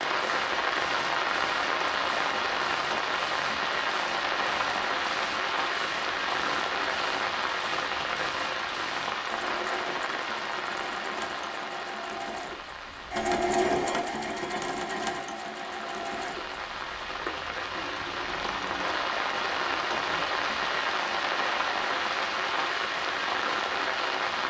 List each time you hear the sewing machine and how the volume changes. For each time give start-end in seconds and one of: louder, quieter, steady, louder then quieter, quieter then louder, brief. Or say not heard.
0.1-20.5 louder then quieter.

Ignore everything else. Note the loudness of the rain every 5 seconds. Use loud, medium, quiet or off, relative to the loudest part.
loud, loud, medium, medium, loud.